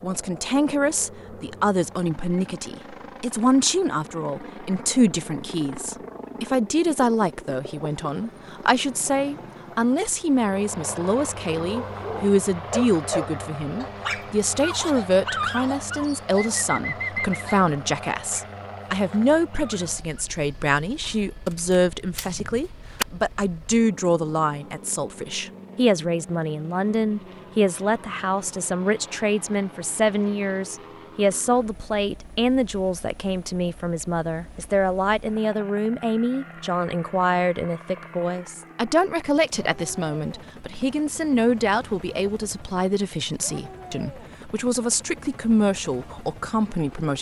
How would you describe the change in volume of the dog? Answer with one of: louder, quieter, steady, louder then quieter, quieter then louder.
quieter.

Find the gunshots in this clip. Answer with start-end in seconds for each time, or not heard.
21.0-23.1.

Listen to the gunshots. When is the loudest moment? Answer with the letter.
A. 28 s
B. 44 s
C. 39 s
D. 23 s
D.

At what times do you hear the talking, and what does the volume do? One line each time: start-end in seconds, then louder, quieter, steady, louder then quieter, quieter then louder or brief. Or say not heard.
0.0-47.1 steady.